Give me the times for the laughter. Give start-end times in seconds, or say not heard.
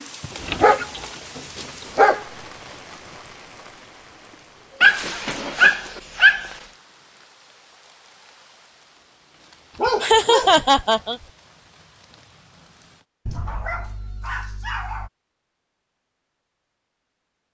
10.0-11.2.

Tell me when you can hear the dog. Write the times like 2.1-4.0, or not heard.
0.2-2.2, 4.8-6.5, 9.8-11.2, 13.2-15.1.